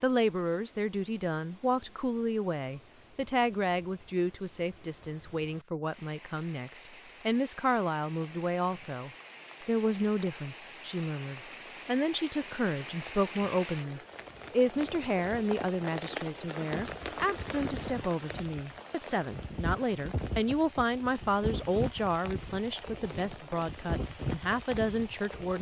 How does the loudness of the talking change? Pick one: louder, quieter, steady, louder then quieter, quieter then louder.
steady.